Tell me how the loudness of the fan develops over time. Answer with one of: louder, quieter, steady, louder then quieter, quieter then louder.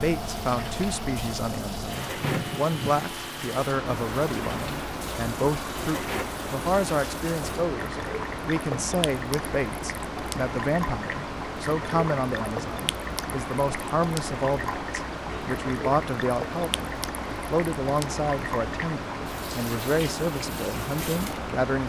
steady.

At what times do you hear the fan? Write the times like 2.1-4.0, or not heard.
0.0-21.8.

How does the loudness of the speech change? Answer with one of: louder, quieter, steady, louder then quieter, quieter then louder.
steady.